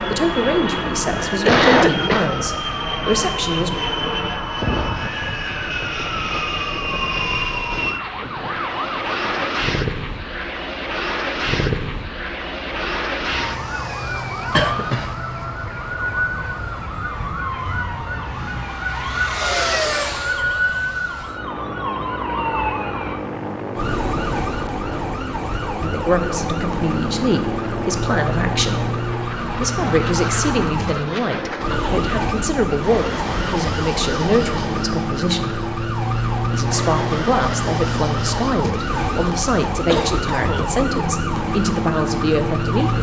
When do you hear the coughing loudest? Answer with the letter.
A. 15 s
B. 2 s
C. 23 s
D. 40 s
B.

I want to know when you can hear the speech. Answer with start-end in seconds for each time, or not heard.
0.1-3.7, 25.8-28.9, 29.6-35.6, 36.5-42.9.